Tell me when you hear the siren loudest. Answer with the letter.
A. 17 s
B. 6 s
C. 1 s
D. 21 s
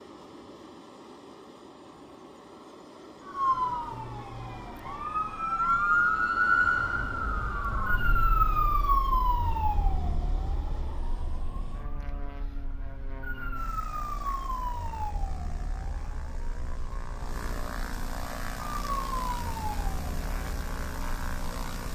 B.